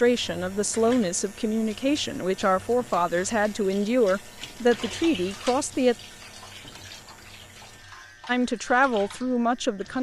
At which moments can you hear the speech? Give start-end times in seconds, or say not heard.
0.0-6.0, 8.2-9.9.